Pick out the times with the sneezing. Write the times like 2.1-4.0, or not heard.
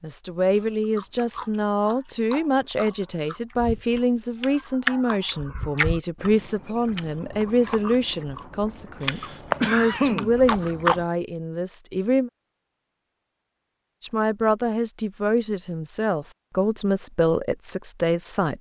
9.0-10.3.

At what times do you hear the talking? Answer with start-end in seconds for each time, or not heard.
0.0-12.3, 14.0-18.5.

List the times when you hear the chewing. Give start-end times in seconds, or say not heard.
0.6-11.1.